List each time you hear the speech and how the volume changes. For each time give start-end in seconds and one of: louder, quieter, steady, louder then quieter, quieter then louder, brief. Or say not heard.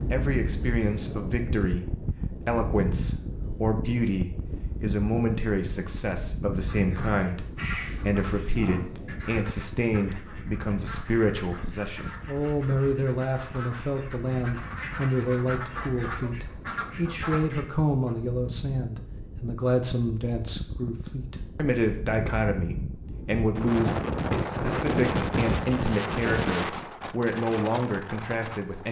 0.1-28.8 steady.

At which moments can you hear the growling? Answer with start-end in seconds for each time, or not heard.
7.5-8.8.